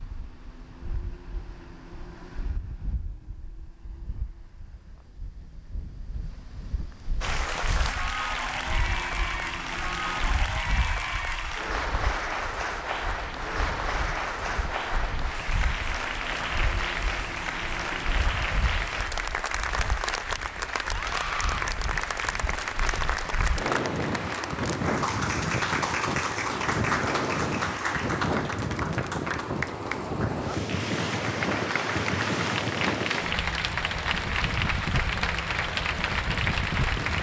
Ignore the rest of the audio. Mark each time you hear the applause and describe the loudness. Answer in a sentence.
The applause can be heard from 7.2 to 37.1 s, at a steady volume.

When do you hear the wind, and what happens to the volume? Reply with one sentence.
You can hear the wind from 0.0 to 37.1 s, getting louder.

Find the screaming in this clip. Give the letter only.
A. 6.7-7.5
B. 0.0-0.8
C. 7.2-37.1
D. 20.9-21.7
D.